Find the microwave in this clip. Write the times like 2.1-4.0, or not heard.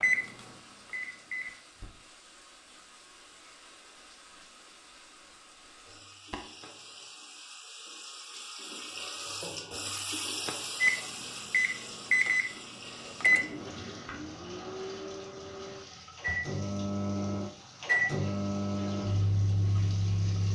0.0-1.6, 10.8-20.5.